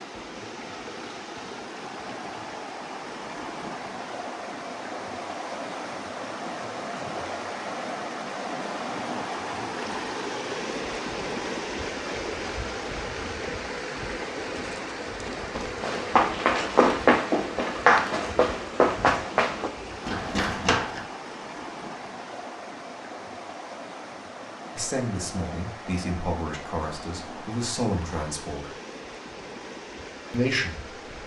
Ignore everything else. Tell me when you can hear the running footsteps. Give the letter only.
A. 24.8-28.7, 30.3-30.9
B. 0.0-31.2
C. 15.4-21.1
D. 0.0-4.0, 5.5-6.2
C.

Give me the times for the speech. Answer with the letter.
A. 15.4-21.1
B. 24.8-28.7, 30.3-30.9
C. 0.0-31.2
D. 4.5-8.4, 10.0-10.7
B.